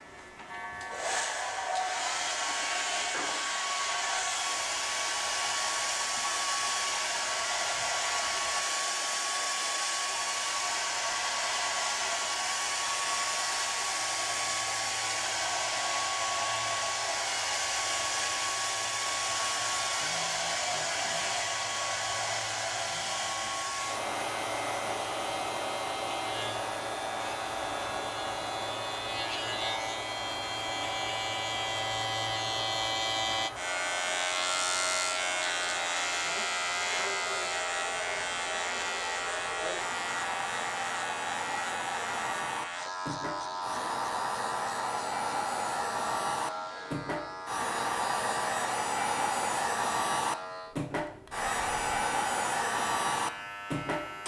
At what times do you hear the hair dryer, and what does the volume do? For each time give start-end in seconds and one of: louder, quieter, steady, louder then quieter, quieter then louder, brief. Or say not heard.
0.0-54.2 quieter then louder.